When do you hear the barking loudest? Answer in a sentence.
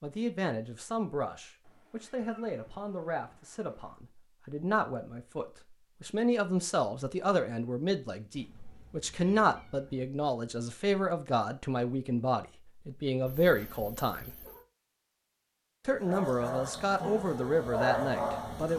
The volume of the barking peaks at 18 seconds.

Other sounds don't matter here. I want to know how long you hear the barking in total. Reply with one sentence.
You can hear the barking for 3 seconds altogether.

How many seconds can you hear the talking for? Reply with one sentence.
The talking can be heard for 17 seconds in total.